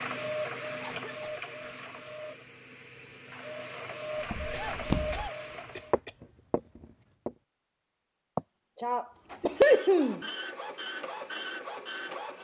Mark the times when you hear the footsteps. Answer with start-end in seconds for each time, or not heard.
4.3-5.3, 5.9-7.3.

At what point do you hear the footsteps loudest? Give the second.
5 s.